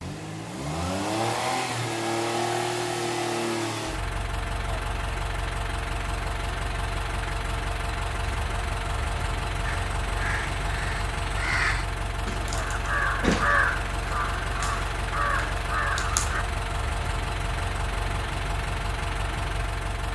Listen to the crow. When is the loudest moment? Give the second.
13 s.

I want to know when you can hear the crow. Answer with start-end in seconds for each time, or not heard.
9.7-16.4.